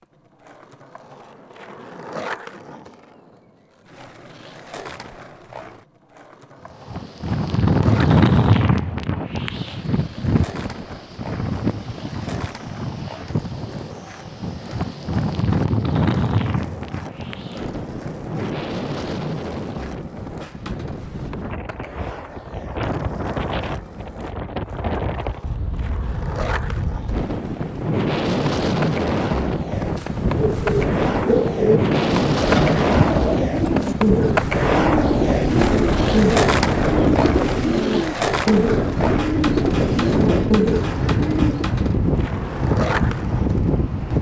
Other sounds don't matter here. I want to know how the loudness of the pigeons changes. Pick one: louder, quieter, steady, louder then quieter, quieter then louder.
steady.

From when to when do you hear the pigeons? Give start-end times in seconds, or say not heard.
30.5-41.7.